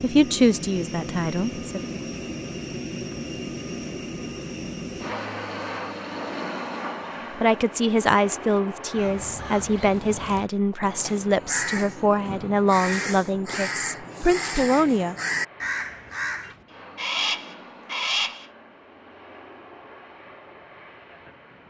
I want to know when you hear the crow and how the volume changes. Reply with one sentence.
You can hear the crow from 8.9 to 18.4 s, getting louder.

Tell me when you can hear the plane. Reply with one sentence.
The plane can be heard from 0.0 to 21.6 s.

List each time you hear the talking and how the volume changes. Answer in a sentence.
You can hear the talking briefly from 0.0 to 1.6 s; and from 7.3 to 15.2 s, at a steady volume.